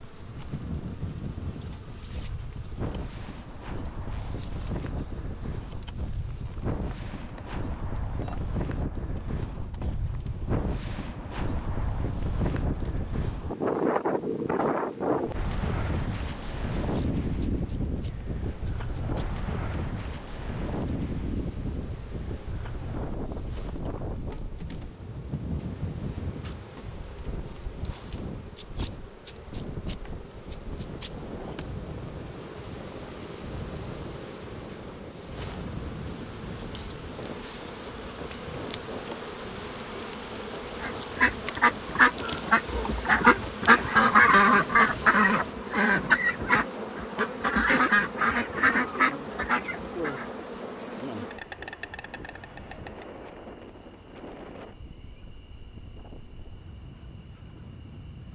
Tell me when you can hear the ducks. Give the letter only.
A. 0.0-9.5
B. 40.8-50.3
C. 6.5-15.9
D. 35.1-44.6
B.